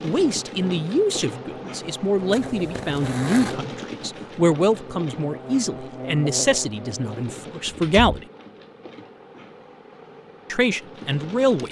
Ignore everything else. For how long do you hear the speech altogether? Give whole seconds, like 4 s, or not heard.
9 s.